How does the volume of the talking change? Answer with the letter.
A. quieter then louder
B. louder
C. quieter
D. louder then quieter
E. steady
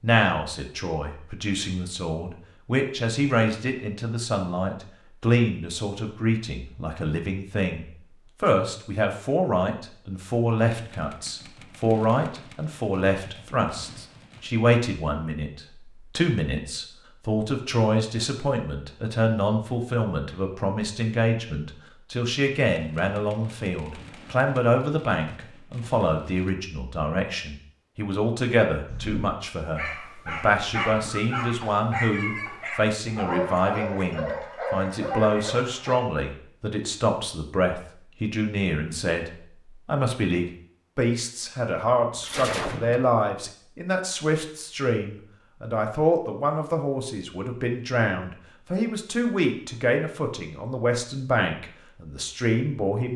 E.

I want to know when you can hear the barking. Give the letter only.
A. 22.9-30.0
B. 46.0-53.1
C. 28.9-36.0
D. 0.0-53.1
C.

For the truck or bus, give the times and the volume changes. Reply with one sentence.
You can't hear the truck or bus here.